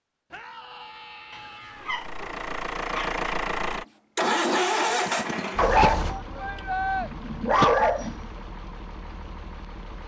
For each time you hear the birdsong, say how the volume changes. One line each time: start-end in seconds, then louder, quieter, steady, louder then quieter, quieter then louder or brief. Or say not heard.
not heard.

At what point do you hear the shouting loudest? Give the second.
7 s.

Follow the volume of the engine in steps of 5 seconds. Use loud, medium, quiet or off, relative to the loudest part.
loud, medium.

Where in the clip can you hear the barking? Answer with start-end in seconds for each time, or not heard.
1.3-3.2, 5.5-6.2, 7.0-8.2.